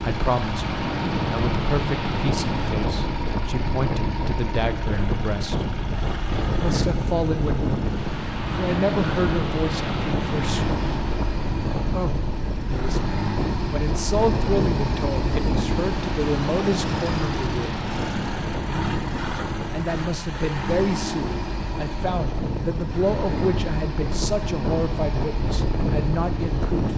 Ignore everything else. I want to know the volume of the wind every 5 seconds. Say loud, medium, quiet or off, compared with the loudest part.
loud, loud, loud, loud, medium, loud.